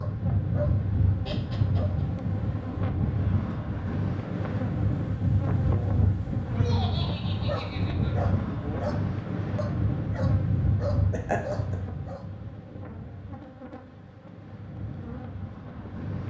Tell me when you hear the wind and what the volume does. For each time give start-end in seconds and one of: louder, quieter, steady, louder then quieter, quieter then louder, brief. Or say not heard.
0.0-16.2 quieter.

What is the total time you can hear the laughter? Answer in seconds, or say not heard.
3 s.